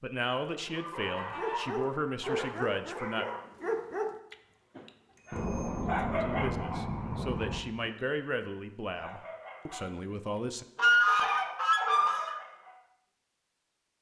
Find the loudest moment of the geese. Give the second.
11 s.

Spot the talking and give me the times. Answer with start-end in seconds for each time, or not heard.
0.0-3.2, 6.2-10.7.